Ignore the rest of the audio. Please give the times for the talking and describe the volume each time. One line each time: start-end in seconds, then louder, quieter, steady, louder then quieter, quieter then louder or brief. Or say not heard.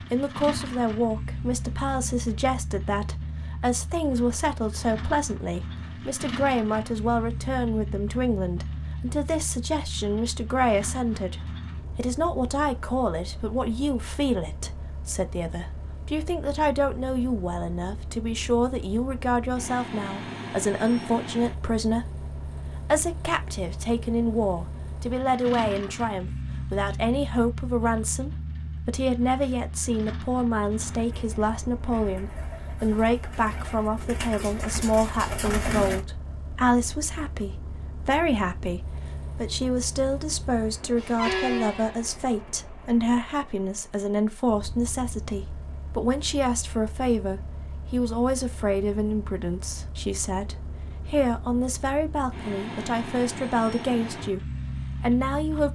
0.0-55.7 steady.